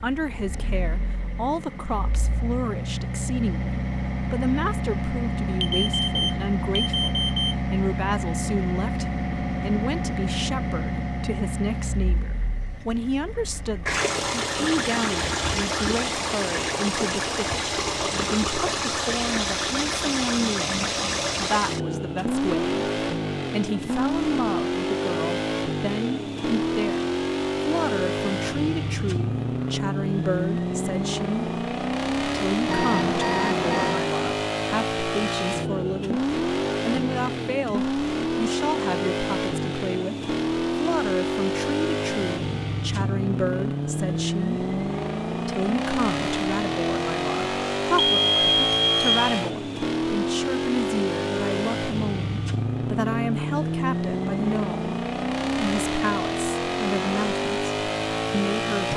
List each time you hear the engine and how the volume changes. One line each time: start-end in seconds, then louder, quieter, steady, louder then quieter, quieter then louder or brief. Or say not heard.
0.0-58.9 steady.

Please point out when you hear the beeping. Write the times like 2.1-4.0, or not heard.
5.6-7.5, 32.6-34.0, 48.0-49.3.